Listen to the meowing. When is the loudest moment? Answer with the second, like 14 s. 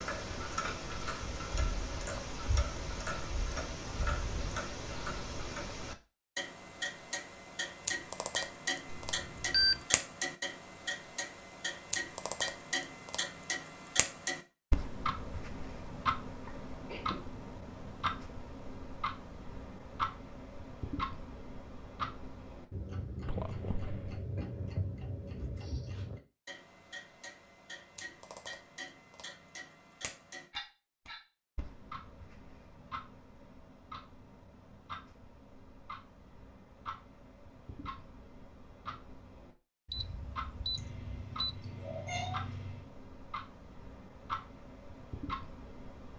42 s.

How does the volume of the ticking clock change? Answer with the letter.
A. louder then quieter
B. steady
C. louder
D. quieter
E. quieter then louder
D.